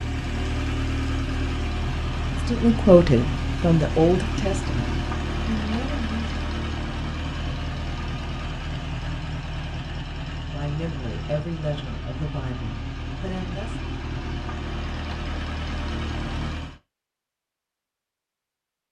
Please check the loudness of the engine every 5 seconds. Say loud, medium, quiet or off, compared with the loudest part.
loud, loud, medium, loud.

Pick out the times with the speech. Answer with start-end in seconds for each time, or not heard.
2.5-6.5, 10.4-13.8.